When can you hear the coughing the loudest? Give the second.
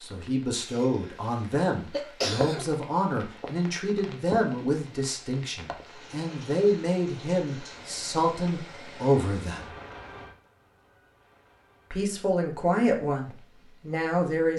2 s.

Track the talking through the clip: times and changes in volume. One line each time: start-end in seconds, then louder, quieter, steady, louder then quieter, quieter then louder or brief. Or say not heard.
0.0-9.8 steady
11.9-14.5 brief.